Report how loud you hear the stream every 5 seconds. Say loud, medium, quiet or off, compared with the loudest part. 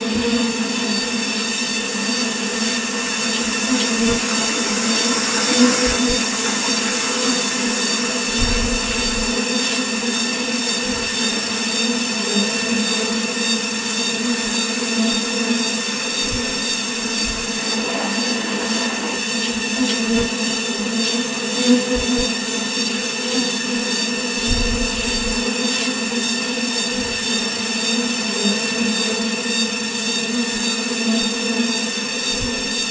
loud, loud, medium, medium, off, off, off.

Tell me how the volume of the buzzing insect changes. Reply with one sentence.
The volume of the buzzing insect stays about the same.